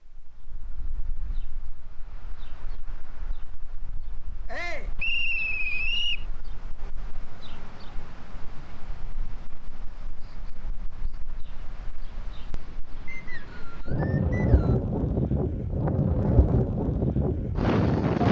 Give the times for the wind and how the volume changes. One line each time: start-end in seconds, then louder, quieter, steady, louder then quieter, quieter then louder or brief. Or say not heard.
0.0-18.2 louder.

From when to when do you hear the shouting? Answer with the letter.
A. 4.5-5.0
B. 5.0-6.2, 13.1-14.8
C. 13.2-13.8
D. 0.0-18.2
A.